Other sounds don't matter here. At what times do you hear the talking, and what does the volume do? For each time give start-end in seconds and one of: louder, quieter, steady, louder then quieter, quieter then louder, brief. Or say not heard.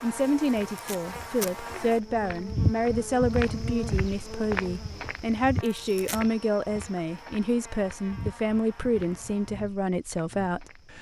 0.0-10.9 steady.